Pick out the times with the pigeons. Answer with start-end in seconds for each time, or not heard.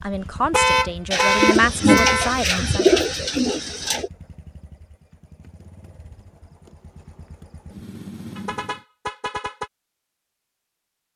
1.1-4.1.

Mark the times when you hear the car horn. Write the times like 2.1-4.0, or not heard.
0.1-2.4, 8.3-9.7.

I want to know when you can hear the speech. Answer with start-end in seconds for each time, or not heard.
0.0-2.9.